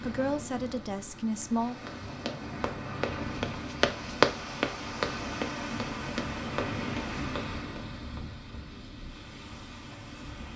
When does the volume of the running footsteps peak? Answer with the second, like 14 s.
4 s.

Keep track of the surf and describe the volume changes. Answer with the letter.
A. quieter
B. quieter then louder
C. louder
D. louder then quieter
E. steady
D.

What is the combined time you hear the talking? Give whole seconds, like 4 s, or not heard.
2 s.